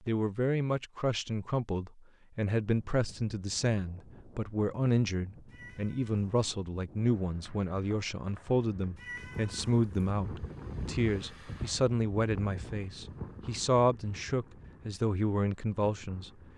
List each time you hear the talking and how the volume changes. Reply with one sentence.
The talking can be heard from 0.1 to 16.3 s, at a steady volume.